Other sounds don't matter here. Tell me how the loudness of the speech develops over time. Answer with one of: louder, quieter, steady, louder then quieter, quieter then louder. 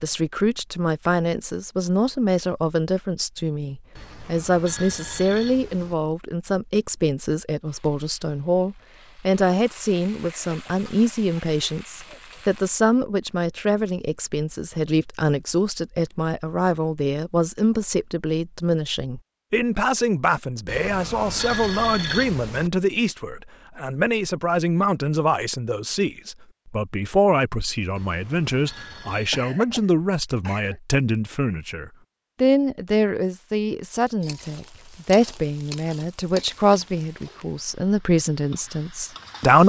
steady.